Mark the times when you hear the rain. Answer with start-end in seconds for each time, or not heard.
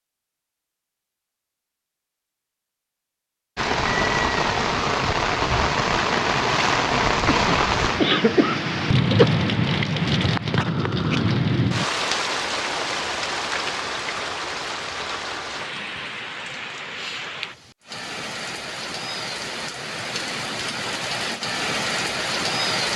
3.5-22.9.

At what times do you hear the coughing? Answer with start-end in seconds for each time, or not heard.
7.2-9.2.